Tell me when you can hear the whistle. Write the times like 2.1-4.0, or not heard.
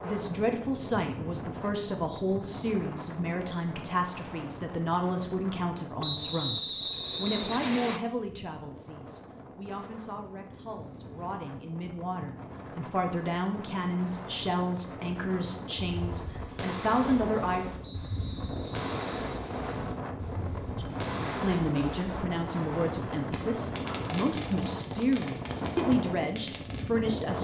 6.0-8.0, 17.8-19.7.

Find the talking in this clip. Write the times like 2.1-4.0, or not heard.
0.0-17.6, 20.8-27.4.